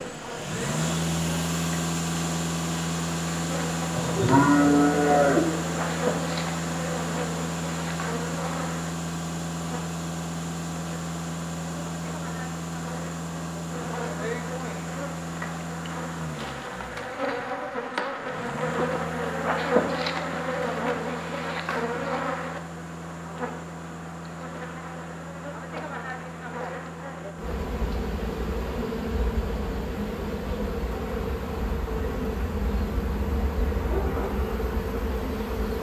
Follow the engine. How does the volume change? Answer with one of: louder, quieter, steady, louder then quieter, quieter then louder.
quieter.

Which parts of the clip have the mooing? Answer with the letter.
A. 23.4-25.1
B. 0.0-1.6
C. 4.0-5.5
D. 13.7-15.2
C.